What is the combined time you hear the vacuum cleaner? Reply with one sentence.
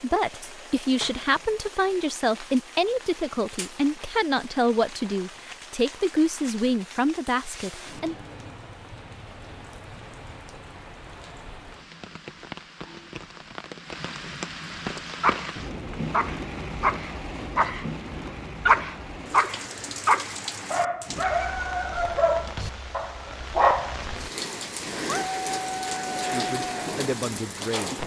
The vacuum cleaner can't be heard in this clip.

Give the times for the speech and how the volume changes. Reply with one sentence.
The speech can be heard from 0.0 to 8.2 s, at a steady volume; and briefly from 26.3 to 28.0 s.